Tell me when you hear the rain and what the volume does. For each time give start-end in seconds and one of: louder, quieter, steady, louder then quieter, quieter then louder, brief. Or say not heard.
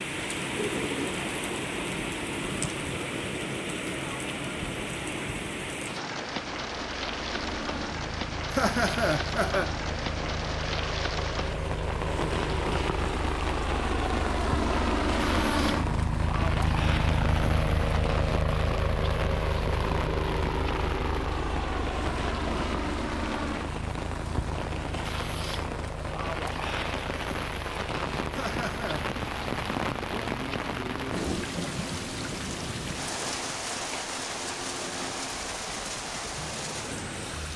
0.0-37.5 steady.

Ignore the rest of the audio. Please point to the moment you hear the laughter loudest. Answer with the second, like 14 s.
9 s.